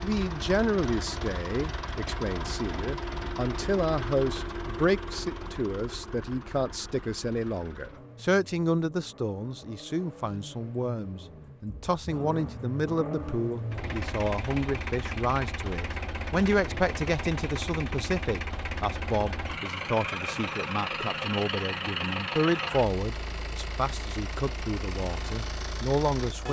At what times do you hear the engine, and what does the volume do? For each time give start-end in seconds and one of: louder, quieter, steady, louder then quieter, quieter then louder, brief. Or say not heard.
0.0-26.4 quieter then louder.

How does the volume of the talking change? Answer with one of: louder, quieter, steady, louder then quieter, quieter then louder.
steady.